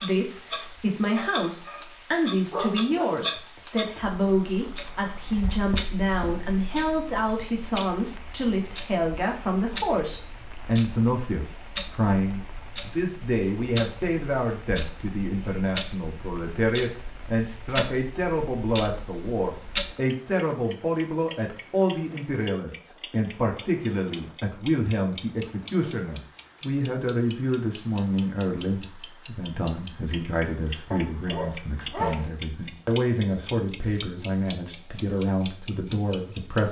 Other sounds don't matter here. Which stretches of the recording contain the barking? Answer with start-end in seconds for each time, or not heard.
2.5-4.2, 30.9-32.4.